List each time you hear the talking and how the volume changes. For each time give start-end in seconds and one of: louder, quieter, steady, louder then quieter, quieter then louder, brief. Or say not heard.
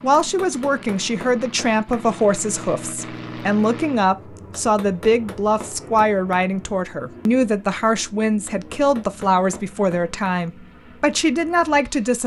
0.0-12.2 steady.